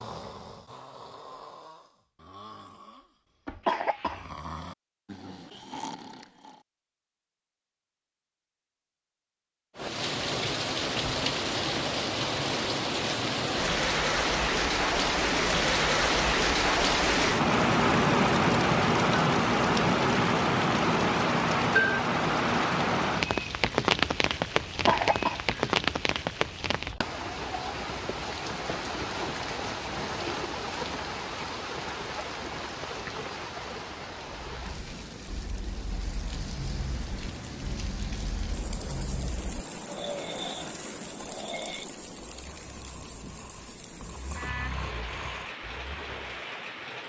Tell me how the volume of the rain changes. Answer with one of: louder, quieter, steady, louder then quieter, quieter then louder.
quieter.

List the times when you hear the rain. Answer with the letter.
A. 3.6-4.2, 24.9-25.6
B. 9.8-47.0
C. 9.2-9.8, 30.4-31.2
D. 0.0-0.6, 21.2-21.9
B.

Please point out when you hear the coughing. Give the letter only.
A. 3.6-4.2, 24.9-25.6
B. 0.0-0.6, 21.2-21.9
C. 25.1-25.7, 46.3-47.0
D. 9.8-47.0
A.